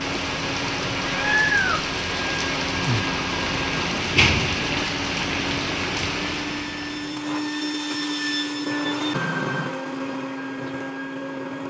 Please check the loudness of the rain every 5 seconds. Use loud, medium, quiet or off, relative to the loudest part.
loud, loud, off.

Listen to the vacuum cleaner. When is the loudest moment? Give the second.
9 s.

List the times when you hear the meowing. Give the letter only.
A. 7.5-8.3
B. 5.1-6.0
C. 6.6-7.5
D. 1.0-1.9
D.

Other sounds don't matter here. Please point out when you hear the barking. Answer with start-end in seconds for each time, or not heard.
not heard.